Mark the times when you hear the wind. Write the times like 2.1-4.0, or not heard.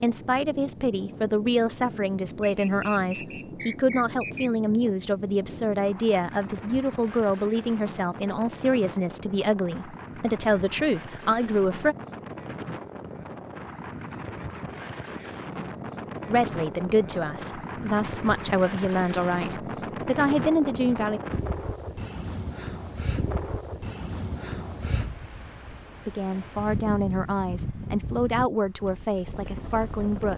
0.0-30.3.